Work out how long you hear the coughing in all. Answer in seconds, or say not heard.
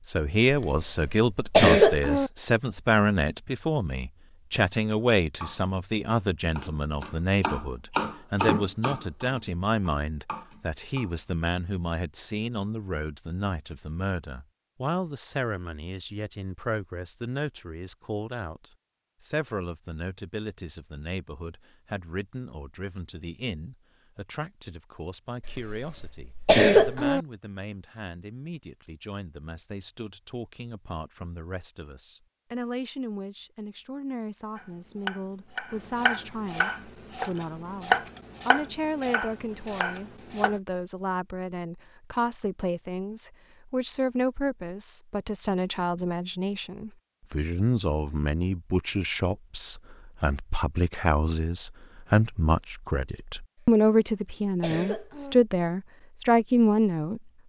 5 s.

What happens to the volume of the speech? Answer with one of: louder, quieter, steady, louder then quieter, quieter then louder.
quieter then louder.